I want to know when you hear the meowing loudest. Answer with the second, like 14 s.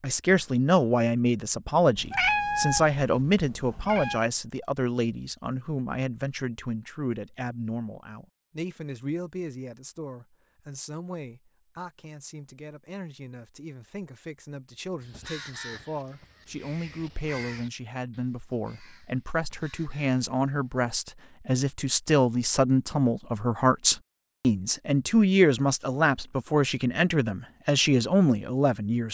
2 s.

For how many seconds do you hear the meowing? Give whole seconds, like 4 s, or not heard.
2 s.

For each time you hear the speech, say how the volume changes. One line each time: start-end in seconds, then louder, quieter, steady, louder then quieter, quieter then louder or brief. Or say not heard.
0.0-29.0 quieter then louder.